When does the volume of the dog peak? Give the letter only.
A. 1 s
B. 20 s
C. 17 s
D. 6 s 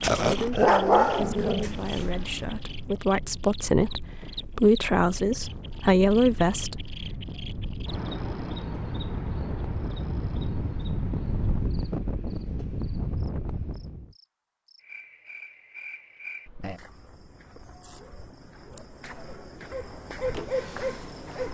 A.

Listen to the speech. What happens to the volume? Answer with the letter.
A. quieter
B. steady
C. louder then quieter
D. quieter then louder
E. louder
E.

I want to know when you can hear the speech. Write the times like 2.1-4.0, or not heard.
0.2-7.2.